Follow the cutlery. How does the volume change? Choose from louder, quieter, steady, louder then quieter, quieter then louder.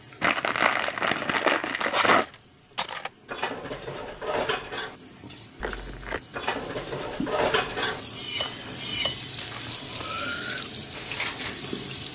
louder then quieter.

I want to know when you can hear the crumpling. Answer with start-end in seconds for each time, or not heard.
0.2-2.2, 5.6-6.2, 8.3-10.2.